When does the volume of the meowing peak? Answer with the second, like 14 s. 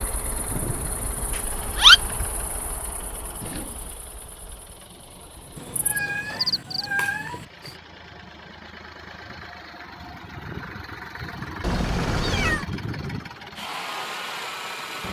2 s.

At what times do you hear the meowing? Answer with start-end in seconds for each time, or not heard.
1.3-2.0, 5.5-7.5, 11.6-12.7.